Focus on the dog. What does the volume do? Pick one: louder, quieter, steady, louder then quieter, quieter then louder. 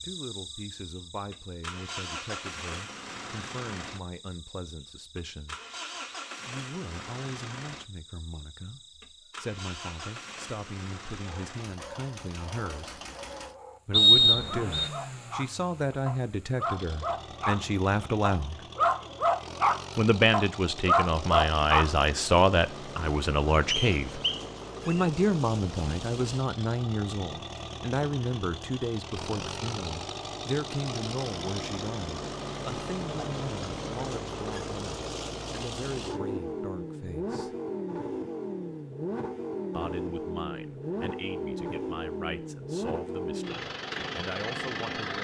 louder.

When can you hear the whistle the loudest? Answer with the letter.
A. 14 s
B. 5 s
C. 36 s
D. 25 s
A.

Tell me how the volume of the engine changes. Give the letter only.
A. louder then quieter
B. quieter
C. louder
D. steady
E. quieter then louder
C.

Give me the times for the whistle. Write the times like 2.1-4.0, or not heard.
13.9-14.9, 23.9-25.1.